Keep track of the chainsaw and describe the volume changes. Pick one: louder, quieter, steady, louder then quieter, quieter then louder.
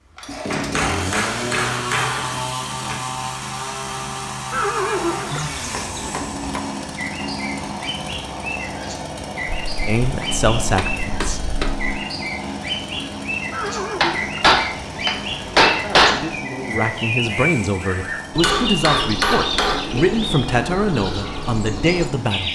quieter.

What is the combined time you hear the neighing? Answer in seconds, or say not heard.
2 s.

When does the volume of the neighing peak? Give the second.
5 s.